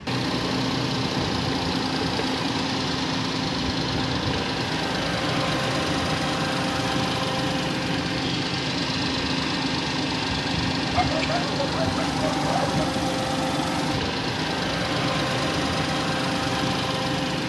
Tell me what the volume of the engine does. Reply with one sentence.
The volume of the engine stays about the same.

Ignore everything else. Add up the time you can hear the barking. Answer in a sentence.
The barking can be heard for 2 seconds in total.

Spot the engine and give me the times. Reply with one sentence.
You can hear the engine from 0.0 to 17.4 s.